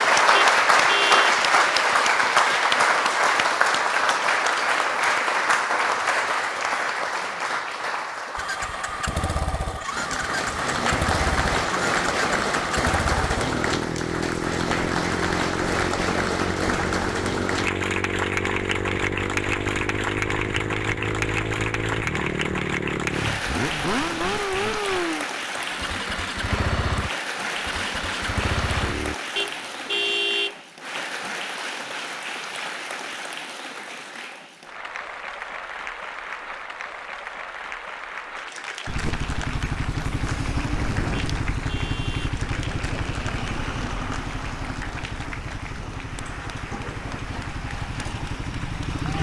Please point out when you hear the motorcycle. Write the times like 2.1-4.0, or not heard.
8.3-29.1, 38.9-49.1.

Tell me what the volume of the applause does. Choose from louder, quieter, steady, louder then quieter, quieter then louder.
quieter.